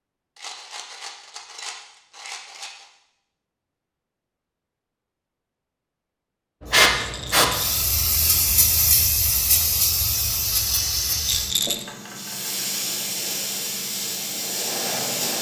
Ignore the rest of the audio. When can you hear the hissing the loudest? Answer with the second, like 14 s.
7 s.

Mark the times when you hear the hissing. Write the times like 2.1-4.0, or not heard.
6.6-15.3.